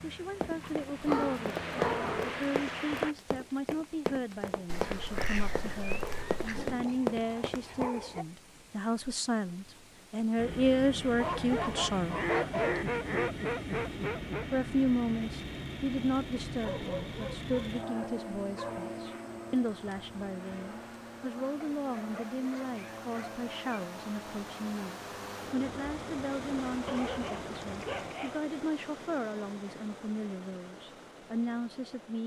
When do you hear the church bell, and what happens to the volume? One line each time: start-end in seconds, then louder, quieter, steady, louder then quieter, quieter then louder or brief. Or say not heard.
not heard.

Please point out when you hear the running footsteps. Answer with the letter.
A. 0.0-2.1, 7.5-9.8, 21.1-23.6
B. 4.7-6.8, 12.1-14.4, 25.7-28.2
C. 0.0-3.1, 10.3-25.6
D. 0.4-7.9
D.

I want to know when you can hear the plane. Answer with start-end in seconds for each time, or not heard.
0.0-3.1, 10.3-25.6.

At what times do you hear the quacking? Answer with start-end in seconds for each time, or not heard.
4.7-6.8, 12.1-14.4, 25.7-28.2.